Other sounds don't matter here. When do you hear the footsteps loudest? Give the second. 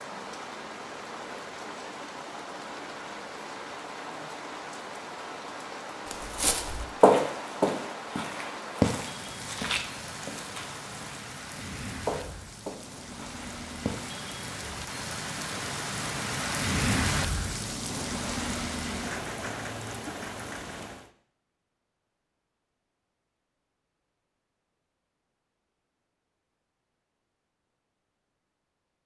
7 s.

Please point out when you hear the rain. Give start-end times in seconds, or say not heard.
0.0-21.1.